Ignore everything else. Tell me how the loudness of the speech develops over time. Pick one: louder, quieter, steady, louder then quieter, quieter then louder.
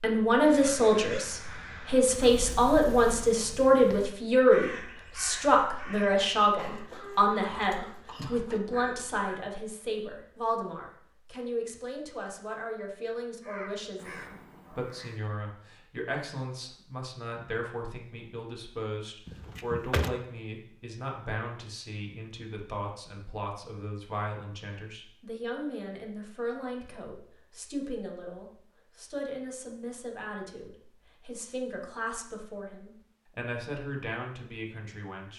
quieter.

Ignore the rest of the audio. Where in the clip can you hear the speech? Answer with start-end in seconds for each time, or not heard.
0.0-35.3.